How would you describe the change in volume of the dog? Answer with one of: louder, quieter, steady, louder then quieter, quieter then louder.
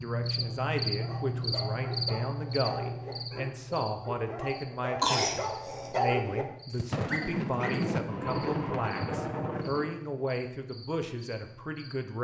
louder then quieter.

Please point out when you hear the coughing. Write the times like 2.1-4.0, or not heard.
5.0-5.9.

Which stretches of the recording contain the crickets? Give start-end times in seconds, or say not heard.
0.0-12.2.